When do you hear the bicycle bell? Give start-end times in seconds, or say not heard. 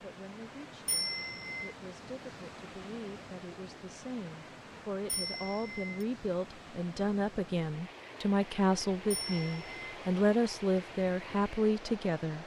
0.8-1.8, 5.0-6.0, 9.1-9.9.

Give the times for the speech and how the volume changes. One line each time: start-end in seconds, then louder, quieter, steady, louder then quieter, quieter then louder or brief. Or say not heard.
0.0-12.4 louder.